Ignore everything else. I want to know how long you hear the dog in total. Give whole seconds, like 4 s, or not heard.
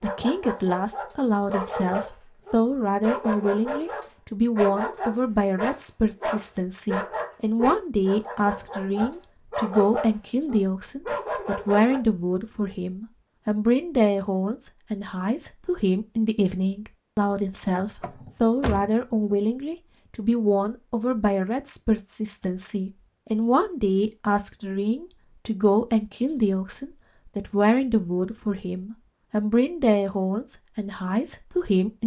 12 s.